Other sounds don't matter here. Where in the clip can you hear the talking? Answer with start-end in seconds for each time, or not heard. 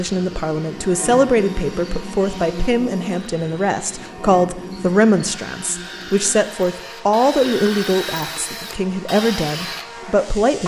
0.0-10.6.